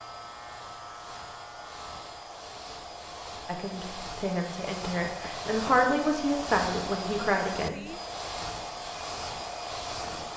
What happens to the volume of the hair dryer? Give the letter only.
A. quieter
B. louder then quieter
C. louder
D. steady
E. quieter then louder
C.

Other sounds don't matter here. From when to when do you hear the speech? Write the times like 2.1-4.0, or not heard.
3.5-7.8.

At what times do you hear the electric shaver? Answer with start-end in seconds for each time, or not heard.
0.0-2.4.